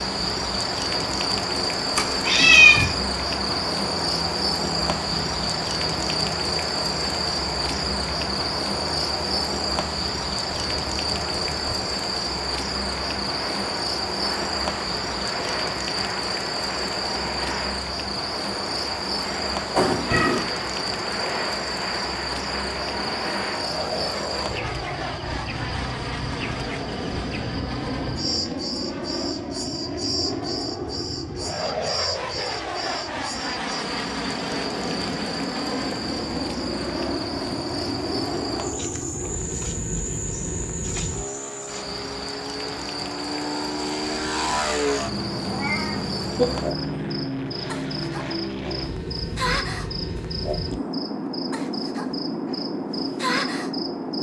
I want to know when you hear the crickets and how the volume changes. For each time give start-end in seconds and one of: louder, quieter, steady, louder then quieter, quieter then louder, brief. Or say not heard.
0.0-54.1 quieter.